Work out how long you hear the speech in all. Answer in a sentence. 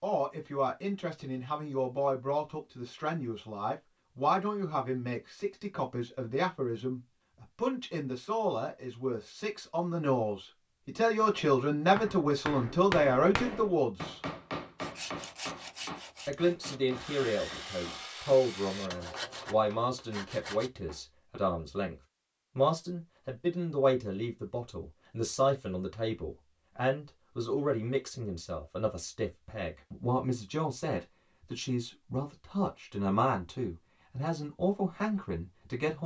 The speech can be heard for 33 seconds in total.